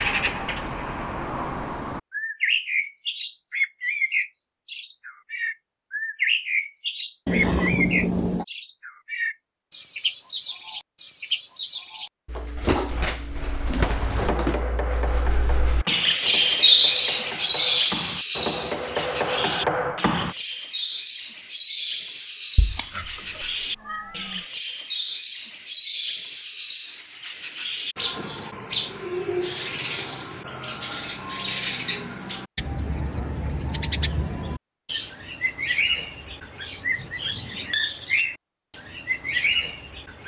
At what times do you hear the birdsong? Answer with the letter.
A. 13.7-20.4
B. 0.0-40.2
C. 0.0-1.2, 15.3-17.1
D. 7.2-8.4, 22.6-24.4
B.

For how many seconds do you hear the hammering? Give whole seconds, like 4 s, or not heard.
7 s.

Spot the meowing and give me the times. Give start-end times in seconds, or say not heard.
7.2-8.4, 22.6-24.4.